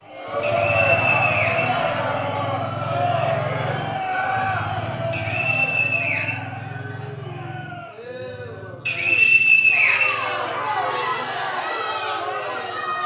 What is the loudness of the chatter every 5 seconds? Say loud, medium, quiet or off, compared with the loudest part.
loud, medium, loud.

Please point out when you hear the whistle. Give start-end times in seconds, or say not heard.
0.4-2.4, 5.1-6.4, 8.8-10.8.